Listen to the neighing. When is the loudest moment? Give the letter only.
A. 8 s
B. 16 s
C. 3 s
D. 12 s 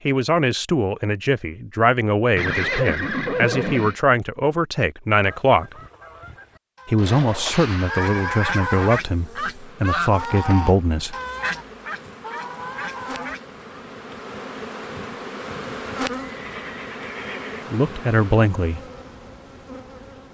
C.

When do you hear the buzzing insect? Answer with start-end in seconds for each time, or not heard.
8.8-20.2.